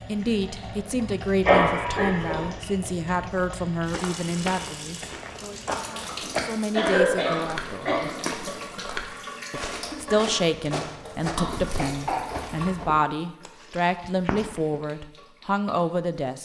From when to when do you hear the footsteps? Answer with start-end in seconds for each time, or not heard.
3.9-14.8.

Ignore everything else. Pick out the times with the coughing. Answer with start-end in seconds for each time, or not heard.
1.4-2.5, 6.8-8.0, 11.3-12.2.